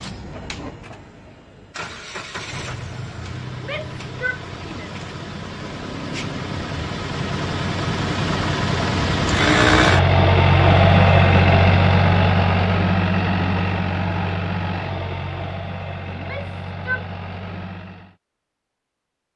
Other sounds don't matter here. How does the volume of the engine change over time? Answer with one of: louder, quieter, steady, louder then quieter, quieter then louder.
louder then quieter.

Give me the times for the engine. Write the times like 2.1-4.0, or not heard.
0.0-18.1.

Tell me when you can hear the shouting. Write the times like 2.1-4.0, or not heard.
3.6-5.0, 16.1-17.1.